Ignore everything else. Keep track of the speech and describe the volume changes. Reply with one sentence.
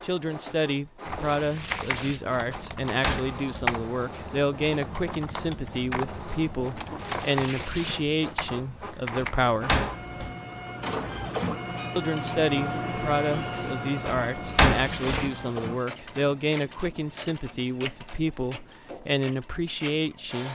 The volume of the speech stays about the same.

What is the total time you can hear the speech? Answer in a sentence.
You can hear the speech for 18 seconds altogether.